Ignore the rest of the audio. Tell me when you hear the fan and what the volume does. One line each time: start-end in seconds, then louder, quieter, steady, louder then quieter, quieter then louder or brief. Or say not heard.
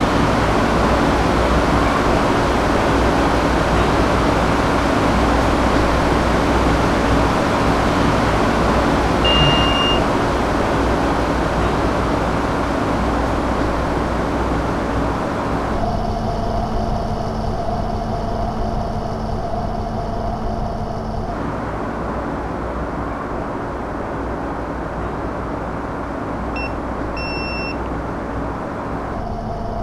0.0-29.7 quieter.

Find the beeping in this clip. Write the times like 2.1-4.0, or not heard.
9.2-10.0, 26.6-27.9.